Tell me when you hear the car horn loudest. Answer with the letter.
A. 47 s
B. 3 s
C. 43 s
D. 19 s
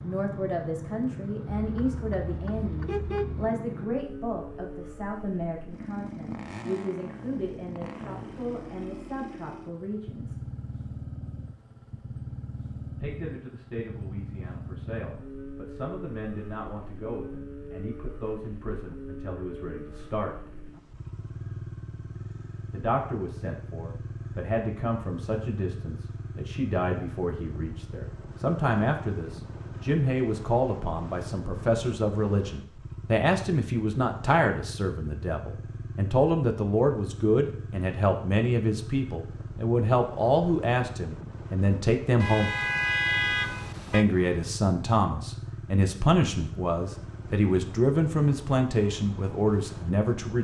C.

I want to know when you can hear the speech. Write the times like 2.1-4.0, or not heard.
0.0-10.4, 12.9-20.3, 22.7-42.5, 43.9-50.3.